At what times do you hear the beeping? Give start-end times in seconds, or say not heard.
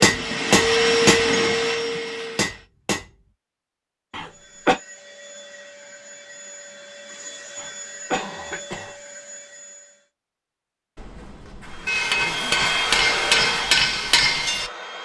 not heard.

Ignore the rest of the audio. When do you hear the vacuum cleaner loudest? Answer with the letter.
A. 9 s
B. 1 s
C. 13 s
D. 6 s
B.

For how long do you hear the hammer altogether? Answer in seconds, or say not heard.
7 s.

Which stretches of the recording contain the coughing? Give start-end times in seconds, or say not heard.
4.1-4.8, 7.5-8.9.